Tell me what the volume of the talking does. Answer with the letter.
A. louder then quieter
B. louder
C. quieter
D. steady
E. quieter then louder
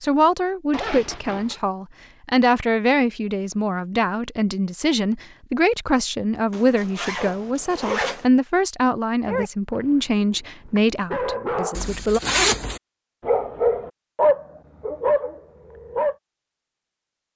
D.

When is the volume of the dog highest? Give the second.
14 s.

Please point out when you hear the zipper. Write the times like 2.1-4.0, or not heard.
0.7-1.6, 6.5-8.2, 11.8-12.8.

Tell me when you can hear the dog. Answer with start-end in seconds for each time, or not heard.
9.2-16.1.